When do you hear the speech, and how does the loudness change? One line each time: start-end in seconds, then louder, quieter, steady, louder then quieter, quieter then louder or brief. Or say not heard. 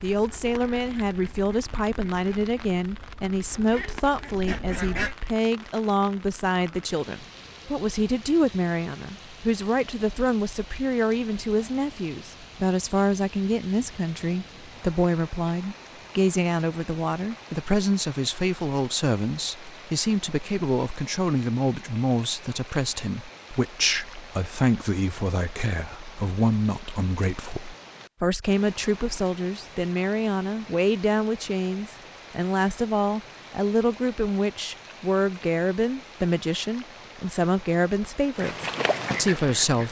0.0-39.8 steady.